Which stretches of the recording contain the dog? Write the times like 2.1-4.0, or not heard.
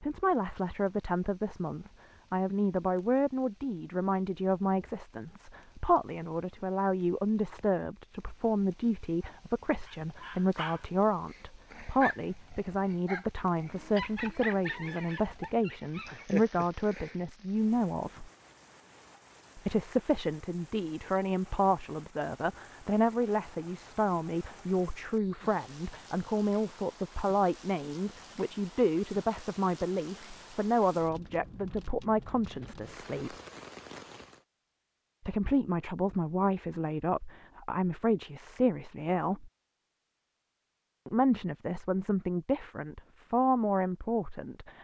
9.2-17.2.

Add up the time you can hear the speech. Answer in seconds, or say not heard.
40 s.